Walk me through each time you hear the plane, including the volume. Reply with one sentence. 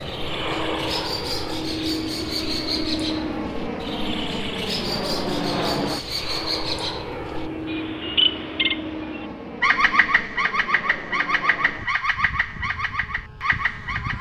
The plane can be heard from 0.0 to 14.1 s, getting quieter.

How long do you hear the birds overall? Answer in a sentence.
The birds can be heard for 14 seconds in total.